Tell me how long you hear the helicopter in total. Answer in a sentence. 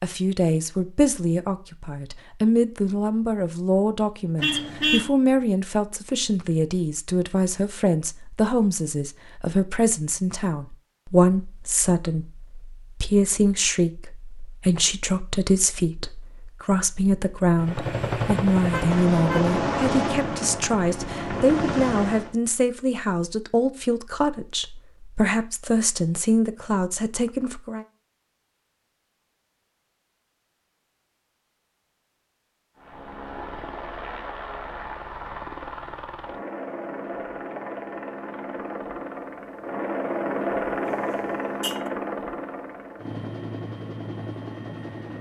You can hear the helicopter for 17 seconds altogether.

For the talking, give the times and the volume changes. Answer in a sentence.
The talking can be heard from 0.0 to 27.9 s, at a steady volume.